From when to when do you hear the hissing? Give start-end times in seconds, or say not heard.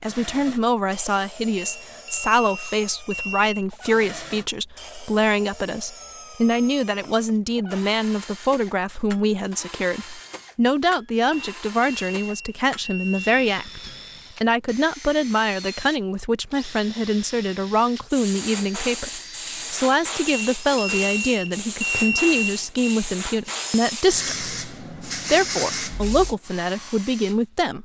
18.1-26.4.